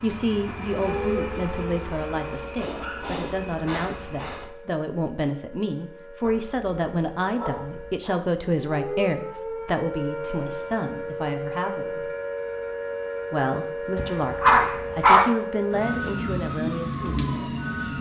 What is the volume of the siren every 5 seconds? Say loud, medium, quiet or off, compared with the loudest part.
medium, medium, loud, loud.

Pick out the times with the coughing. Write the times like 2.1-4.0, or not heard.
not heard.